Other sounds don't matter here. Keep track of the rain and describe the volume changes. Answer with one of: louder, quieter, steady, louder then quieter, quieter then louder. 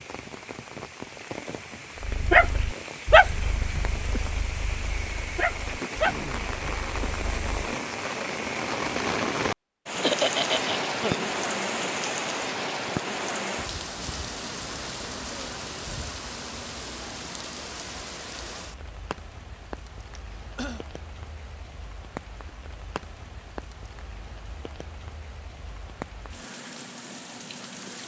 louder then quieter.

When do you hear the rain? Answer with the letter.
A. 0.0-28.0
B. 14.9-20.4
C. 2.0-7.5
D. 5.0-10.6
A.